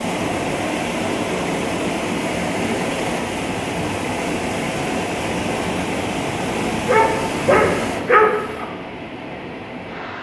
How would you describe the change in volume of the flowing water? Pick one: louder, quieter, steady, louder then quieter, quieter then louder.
quieter.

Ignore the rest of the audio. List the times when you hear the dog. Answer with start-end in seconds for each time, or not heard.
6.8-8.7.